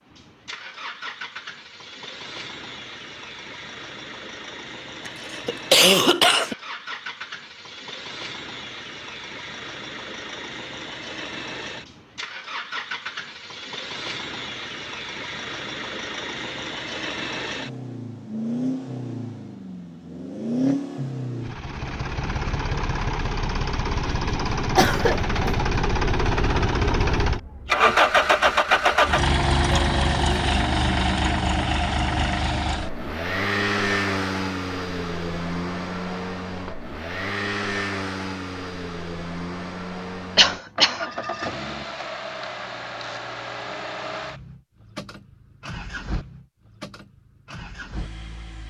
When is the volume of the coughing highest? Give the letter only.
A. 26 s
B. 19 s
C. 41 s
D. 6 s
D.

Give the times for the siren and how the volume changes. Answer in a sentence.
The siren can't be heard in this clip.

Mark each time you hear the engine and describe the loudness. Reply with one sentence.
The engine can be heard from 0.0 to 48.6 s, getting louder then quieter.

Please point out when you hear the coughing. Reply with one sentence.
The coughing can be heard from 5.0 to 6.5 s, from 24.8 to 25.6 s and from 40.4 to 41.0 s.